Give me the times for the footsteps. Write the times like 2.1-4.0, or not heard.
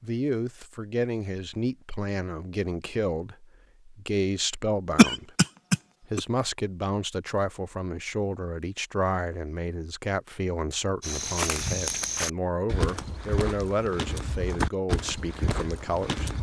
11.0-16.3.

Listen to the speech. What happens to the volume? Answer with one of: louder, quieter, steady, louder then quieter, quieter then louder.
steady.